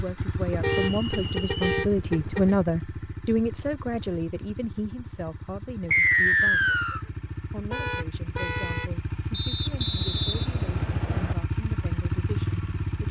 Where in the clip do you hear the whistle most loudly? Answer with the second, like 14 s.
6 s.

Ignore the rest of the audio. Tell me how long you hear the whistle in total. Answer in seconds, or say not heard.
4 s.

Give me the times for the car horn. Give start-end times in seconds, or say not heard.
0.5-2.5, 7.7-8.9.